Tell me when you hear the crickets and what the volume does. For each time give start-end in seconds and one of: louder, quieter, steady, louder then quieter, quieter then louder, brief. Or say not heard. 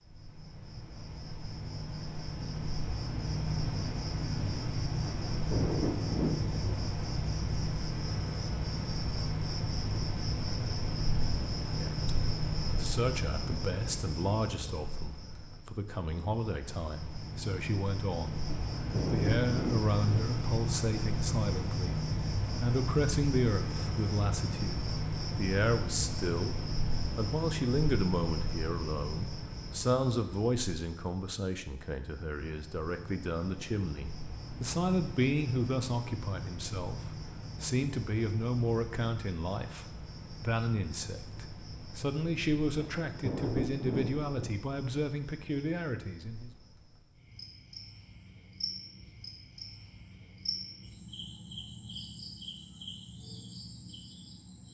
0.1-54.6 quieter.